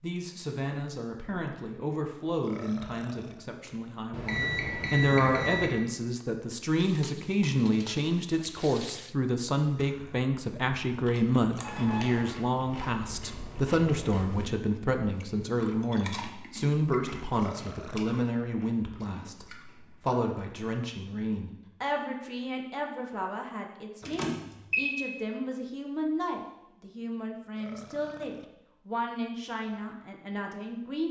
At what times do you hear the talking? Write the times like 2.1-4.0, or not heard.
0.0-31.0.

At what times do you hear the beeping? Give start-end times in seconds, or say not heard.
4.1-5.8, 11.6-12.2, 24.0-24.9.